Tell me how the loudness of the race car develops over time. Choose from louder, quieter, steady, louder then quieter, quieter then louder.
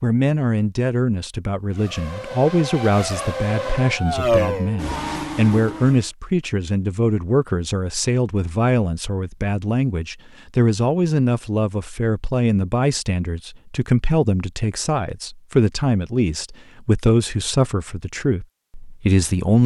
louder then quieter.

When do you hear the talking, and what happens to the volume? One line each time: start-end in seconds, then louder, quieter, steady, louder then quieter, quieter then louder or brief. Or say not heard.
0.0-19.6 steady.